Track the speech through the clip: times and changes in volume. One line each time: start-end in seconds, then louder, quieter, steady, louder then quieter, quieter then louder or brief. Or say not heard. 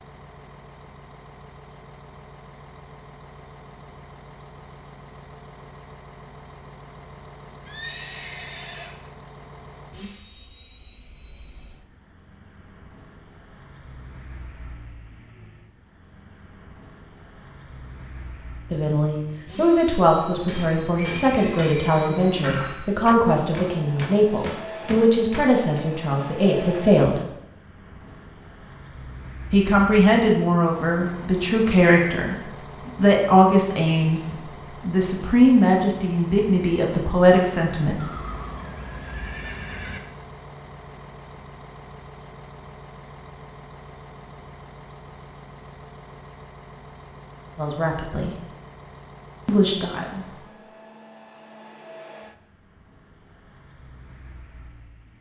18.7-27.2 steady
29.5-38.0 steady
47.5-48.4 brief
49.5-50.2 brief.